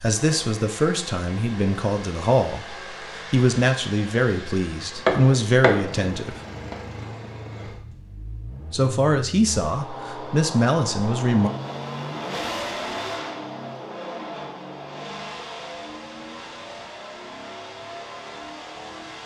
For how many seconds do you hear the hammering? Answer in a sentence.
The hammering can be heard for 2 seconds in total.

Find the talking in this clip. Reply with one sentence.
You can hear the talking from 0.0 to 6.4 s and from 8.7 to 11.5 s.